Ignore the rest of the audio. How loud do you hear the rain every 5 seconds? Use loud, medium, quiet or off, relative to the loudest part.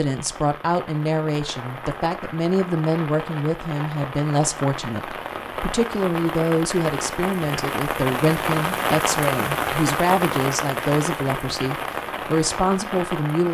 medium, loud, loud.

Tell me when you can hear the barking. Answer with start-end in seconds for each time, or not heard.
not heard.